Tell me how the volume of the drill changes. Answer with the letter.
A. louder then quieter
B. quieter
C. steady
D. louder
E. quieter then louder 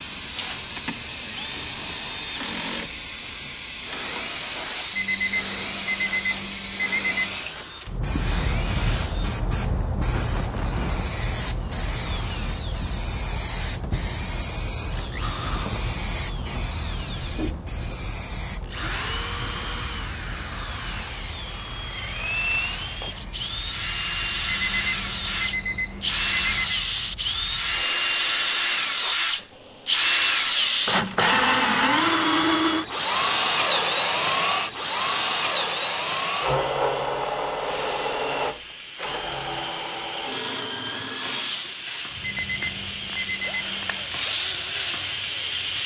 A.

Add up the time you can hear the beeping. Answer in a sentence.
The beeping can be heard for 7 seconds in total.